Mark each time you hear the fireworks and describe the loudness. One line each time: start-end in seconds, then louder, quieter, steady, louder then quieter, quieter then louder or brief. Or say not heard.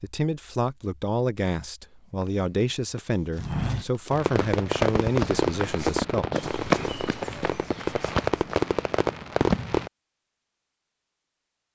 4.1-9.9 quieter then louder.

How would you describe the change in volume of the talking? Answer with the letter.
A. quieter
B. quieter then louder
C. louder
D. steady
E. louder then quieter
D.